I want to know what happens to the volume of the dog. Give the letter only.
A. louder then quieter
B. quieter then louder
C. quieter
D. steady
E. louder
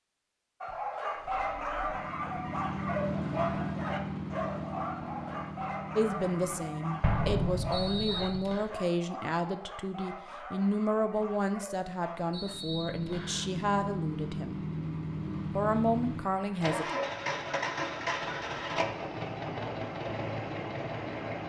C.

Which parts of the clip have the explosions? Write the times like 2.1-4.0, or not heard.
7.0-8.3.